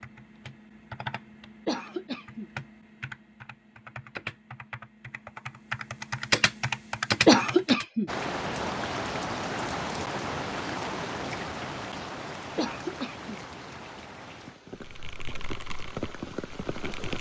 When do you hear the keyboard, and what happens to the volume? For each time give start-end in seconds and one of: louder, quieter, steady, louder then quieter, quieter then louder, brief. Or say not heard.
0.0-7.8 louder
14.8-17.1 brief.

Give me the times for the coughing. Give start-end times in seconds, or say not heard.
1.6-2.5, 7.2-8.1, 12.6-13.4.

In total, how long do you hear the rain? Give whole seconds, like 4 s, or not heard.
9 s.